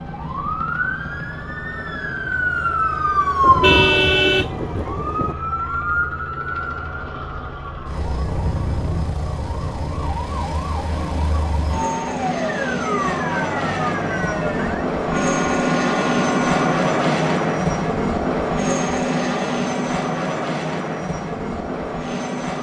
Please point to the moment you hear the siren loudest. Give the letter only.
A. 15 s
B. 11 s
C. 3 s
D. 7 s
C.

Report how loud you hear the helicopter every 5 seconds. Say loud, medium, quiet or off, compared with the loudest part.
quiet, quiet, medium, loud, medium.